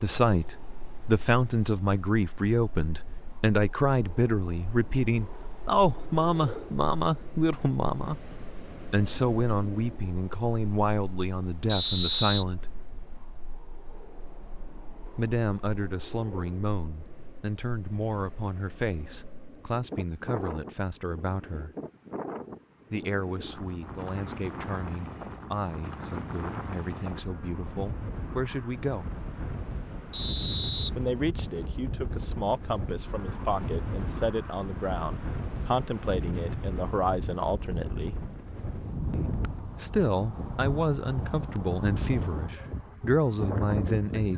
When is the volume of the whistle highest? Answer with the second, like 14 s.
12 s.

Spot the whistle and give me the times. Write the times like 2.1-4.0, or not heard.
11.7-12.4, 30.1-31.4.